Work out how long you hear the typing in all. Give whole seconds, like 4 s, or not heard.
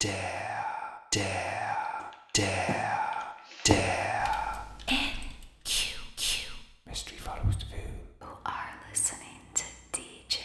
4 s.